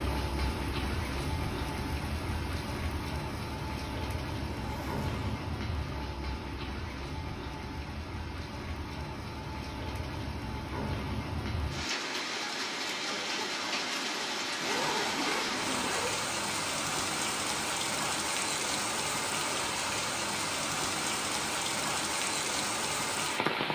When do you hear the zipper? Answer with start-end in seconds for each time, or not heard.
4.5-5.2, 14.6-16.2.